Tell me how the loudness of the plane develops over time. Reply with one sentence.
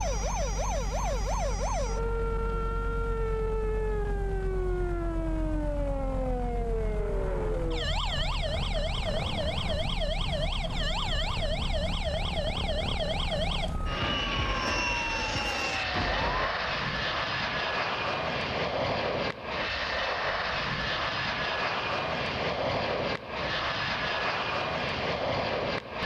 The volume of the plane goes up.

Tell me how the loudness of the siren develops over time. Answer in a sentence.
The loudness of the siren stays about the same.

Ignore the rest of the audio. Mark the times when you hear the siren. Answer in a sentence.
You can hear the siren from 0.0 to 16.5 s.